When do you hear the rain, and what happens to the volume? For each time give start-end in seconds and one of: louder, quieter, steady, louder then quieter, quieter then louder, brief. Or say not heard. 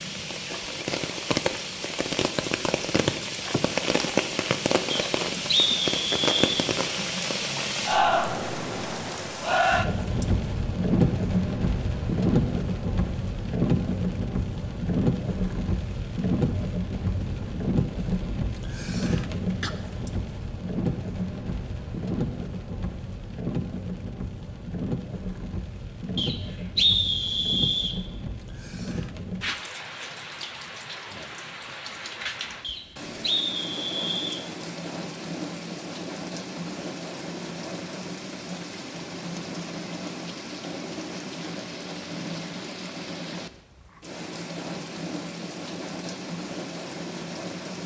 0.0-47.8 quieter.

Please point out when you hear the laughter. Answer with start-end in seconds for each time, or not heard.
not heard.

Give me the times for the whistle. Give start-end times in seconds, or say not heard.
4.9-6.7, 26.1-27.9, 32.6-34.5.